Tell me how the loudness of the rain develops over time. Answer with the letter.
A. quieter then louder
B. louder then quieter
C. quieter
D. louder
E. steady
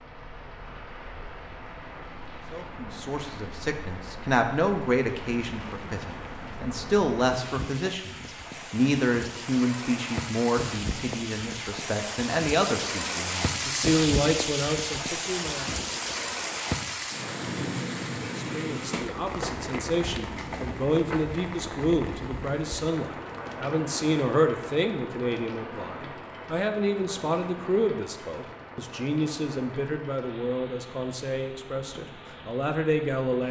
B.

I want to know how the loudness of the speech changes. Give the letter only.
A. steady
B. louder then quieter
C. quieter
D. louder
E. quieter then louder
A.